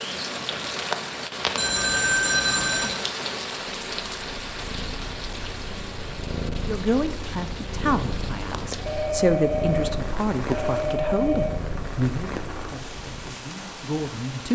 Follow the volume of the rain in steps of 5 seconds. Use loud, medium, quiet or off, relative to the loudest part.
loud, medium, medium.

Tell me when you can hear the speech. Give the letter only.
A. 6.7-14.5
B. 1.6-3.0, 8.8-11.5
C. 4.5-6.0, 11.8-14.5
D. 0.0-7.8
A.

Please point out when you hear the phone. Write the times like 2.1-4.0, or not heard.
1.6-3.0, 8.8-11.5.